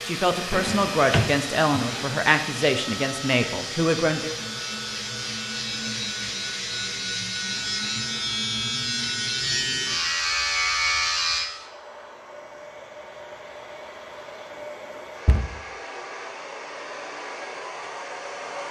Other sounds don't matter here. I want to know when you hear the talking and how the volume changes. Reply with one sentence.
You can hear the talking from 0.0 to 4.3 s, at a steady volume.